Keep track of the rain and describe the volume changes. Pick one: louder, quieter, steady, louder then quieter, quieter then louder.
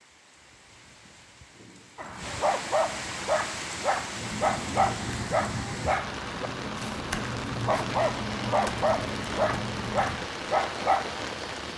louder.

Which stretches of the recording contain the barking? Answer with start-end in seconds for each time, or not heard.
1.9-11.2.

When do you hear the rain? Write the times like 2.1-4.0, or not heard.
0.0-11.7.